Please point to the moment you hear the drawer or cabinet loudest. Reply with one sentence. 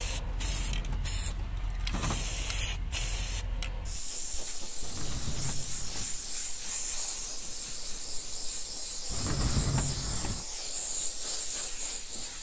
The volume of the drawer or cabinet peaks at 10 seconds.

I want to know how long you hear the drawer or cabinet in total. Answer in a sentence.
You can hear the drawer or cabinet for 5 seconds altogether.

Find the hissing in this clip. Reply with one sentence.
You can hear the hissing from 0.0 to 12.3 s.